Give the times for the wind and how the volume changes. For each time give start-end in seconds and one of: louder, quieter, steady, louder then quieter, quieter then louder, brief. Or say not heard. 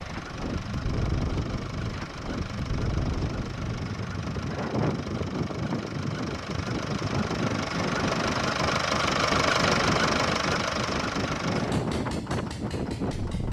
0.0-13.4 steady.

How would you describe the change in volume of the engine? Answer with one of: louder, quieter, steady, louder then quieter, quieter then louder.
louder then quieter.